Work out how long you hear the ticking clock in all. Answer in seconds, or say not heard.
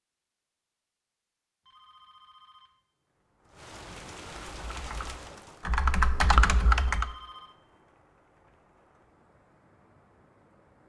not heard.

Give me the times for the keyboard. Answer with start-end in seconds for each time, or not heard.
4.5-7.1.